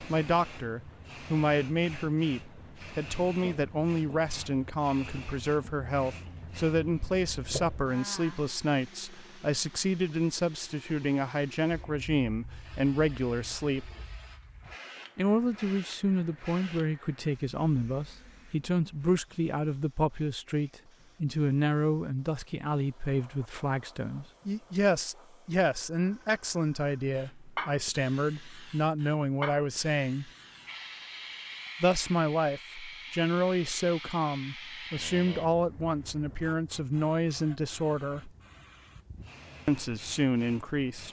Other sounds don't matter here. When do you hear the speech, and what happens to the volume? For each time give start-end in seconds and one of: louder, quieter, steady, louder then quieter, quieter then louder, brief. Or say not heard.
0.0-13.9 steady
15.2-30.3 steady
31.8-38.3 steady
39.6-41.0 brief.